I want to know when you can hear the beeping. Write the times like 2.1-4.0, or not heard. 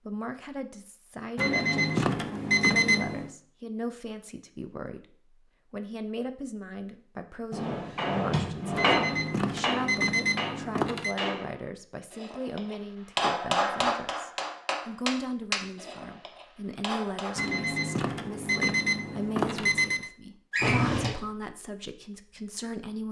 1.4-3.3, 8.8-11.2, 17.4-20.1.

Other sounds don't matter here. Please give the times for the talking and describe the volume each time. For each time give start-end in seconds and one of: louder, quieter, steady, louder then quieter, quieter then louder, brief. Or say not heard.
0.1-23.0 steady.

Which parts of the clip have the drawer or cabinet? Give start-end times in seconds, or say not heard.
7.5-9.2, 20.5-21.1.